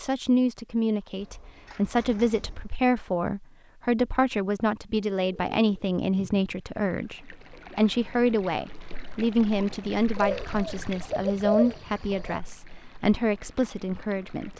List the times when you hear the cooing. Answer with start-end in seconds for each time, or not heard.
1.1-2.7, 5.0-6.5, 10.2-12.4.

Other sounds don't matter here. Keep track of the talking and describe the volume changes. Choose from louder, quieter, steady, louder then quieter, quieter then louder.
steady.